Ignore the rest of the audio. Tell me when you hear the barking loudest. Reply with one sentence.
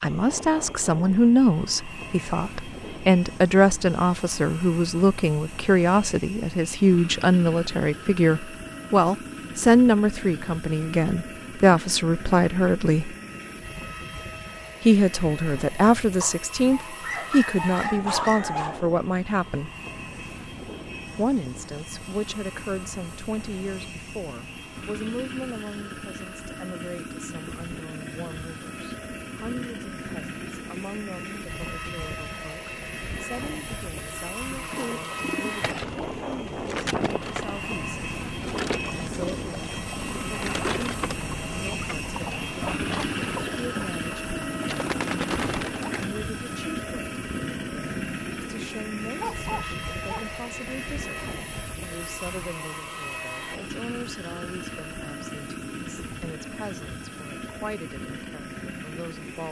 The loudest moment of the barking is at 18 seconds.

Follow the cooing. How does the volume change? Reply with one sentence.
The volume of the cooing stays about the same.